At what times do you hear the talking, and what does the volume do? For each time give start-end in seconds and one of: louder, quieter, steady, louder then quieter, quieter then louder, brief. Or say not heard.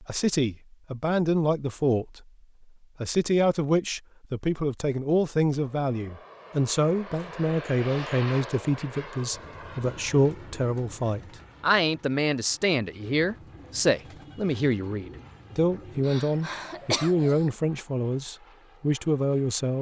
0.0-2.2 brief
3.0-19.7 steady.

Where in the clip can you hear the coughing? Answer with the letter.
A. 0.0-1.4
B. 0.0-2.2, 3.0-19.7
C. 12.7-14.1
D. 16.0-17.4
D.